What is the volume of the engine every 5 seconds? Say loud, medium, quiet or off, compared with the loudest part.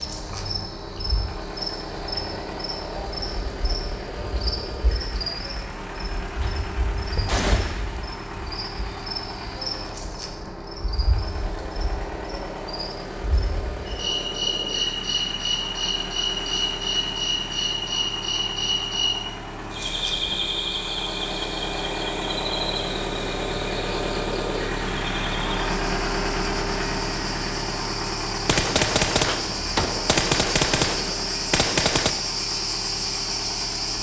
medium, medium, medium, medium, loud, loud, medium.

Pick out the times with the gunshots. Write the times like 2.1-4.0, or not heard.
6.4-8.0, 28.4-32.1.